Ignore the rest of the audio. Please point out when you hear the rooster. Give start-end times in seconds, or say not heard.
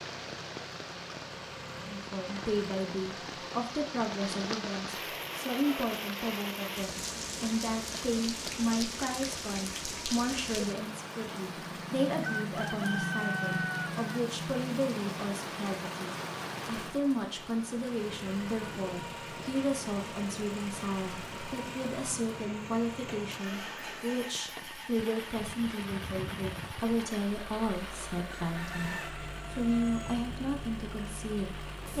12.2-14.2, 28.2-30.1.